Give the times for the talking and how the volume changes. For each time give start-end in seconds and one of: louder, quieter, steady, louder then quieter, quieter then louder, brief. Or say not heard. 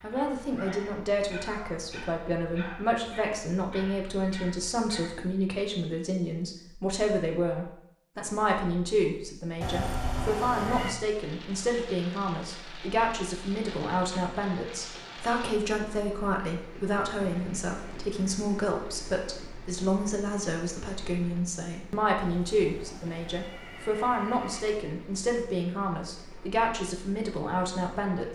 0.0-28.3 steady.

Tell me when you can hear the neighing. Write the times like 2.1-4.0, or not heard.
9.6-10.9, 22.1-24.9.